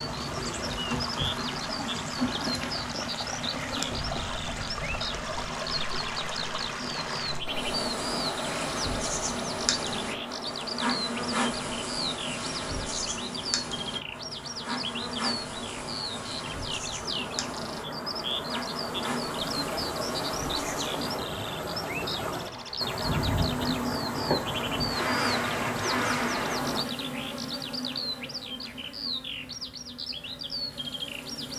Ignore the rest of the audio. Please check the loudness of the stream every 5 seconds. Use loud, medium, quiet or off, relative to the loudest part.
loud, loud, medium, loud, loud, loud, off.